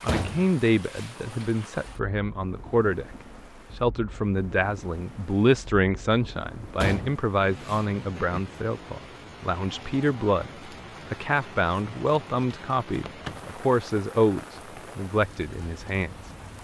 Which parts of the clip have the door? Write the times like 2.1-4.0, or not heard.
0.1-1.1, 6.8-7.8, 12.9-13.5.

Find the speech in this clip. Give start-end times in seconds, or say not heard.
0.0-3.1, 3.8-16.1.